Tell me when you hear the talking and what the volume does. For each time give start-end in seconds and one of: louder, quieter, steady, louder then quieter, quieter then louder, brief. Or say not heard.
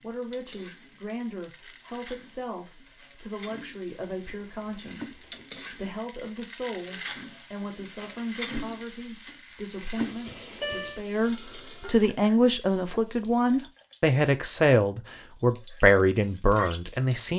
0.0-17.3 louder.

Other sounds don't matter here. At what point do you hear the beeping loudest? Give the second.
11 s.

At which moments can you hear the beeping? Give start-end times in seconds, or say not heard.
3.9-5.5, 10.2-11.0.